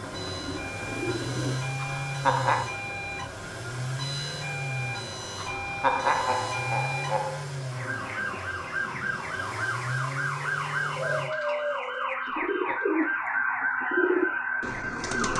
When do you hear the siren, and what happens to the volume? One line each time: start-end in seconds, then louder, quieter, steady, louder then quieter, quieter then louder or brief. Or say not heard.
0.0-15.3 louder.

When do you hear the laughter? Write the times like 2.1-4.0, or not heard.
1.8-2.7, 5.3-7.5, 12.2-12.8.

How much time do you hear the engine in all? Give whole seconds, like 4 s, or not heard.
11 s.